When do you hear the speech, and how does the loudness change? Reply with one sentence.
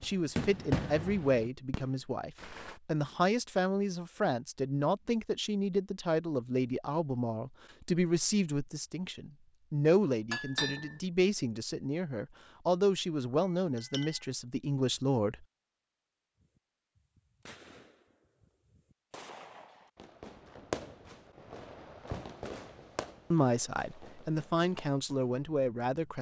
You can hear the speech from 0.0 to 15.4 s, at a steady volume; and briefly from 23.3 to 26.1 s.